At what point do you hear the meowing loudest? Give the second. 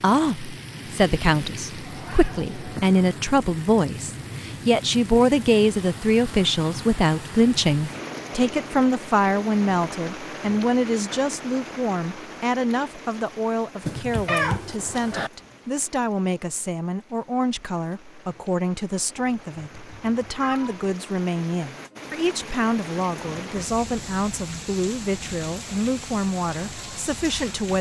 14 s.